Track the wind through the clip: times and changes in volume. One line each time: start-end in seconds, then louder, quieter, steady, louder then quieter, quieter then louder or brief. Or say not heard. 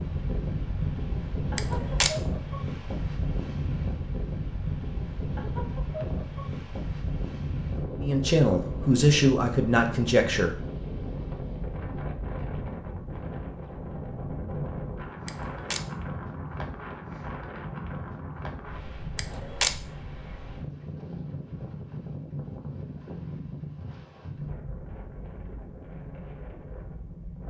0.0-27.4 quieter.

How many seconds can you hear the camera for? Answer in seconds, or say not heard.
2 s.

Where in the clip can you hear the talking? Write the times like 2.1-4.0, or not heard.
8.0-10.6.